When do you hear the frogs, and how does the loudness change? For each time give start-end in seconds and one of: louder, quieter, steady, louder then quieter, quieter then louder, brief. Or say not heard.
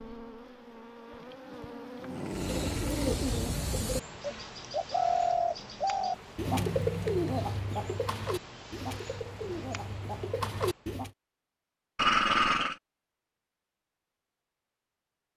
not heard.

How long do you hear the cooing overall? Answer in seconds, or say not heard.
9 s.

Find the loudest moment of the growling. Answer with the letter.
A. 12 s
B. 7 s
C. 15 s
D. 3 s
A.